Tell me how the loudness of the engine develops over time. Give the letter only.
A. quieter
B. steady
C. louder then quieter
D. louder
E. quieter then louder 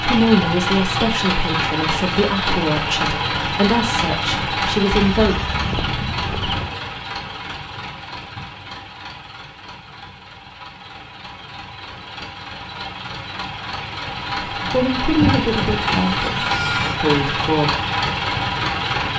E.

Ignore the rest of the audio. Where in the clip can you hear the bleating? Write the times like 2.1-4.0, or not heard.
5.0-6.8, 15.2-16.9.